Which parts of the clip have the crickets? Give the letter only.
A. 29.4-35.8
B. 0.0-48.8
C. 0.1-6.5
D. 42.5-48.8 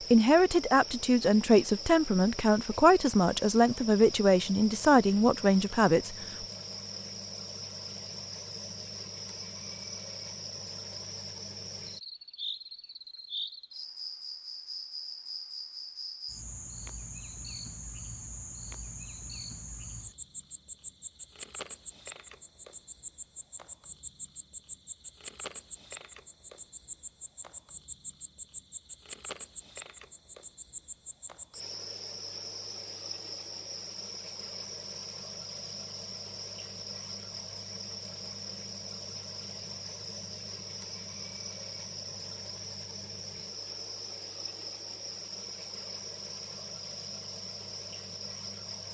B.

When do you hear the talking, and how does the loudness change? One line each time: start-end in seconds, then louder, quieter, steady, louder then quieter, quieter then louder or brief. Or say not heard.
0.1-6.5 steady.